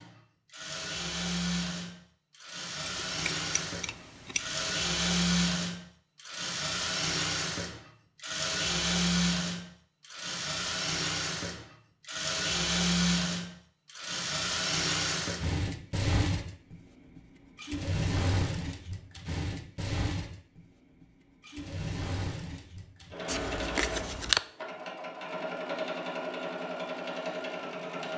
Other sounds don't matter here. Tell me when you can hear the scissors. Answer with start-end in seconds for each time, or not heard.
2.9-4.7, 23.2-24.4.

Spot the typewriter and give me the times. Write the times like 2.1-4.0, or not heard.
not heard.